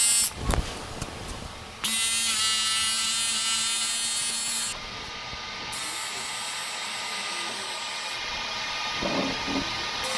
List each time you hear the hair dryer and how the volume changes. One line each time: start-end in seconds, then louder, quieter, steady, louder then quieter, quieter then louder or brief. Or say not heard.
0.0-10.1 louder.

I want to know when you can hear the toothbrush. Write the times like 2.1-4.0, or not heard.
not heard.